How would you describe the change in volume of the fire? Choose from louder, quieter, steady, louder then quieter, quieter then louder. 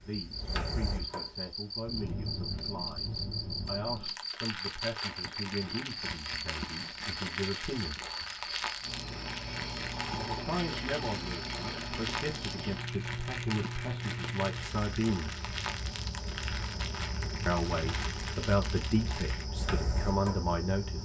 steady.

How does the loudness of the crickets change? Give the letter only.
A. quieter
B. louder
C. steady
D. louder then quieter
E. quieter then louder
C.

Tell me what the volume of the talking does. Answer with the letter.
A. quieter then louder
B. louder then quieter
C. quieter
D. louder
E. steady
D.